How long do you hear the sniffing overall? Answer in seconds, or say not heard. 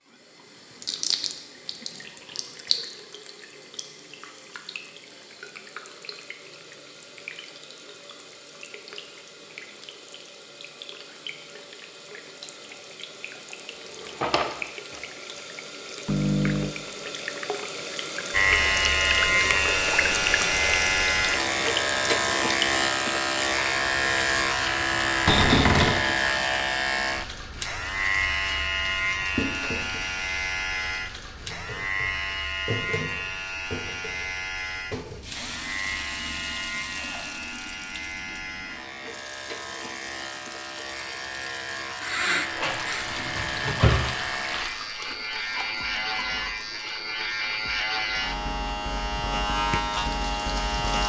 2 s.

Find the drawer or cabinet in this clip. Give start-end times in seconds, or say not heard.
13.9-15.0, 25.2-26.0, 42.5-44.1.